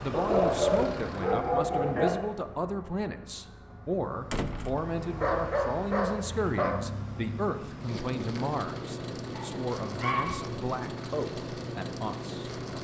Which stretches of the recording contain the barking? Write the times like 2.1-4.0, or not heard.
0.1-2.1, 5.2-6.7, 9.3-10.4.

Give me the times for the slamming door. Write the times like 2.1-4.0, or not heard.
4.3-4.8.